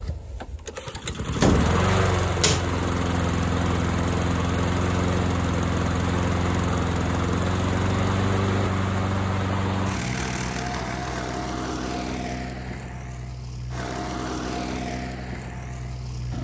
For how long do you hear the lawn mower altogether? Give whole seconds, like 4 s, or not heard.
16 s.